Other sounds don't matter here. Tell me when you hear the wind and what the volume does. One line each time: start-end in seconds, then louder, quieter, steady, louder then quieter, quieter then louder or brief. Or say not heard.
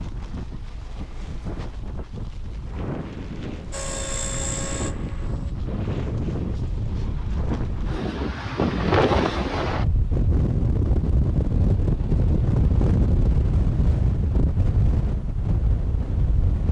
0.0-16.6 louder.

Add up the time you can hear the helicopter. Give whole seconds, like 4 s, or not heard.
2 s.